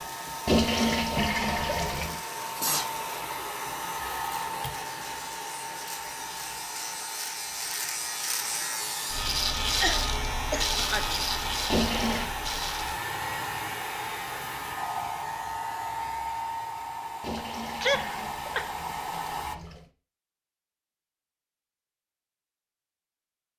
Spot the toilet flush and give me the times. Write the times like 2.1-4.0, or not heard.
0.5-2.2, 11.7-12.3, 17.2-19.9.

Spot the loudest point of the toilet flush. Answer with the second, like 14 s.
1 s.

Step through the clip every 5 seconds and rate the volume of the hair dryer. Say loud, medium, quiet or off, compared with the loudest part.
loud, medium, loud, loud, off.